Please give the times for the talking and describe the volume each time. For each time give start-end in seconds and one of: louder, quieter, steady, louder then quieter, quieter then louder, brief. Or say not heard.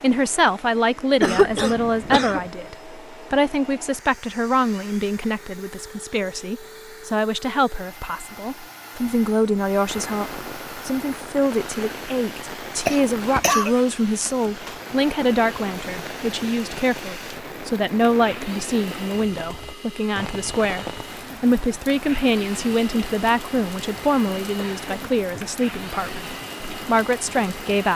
0.0-27.9 steady.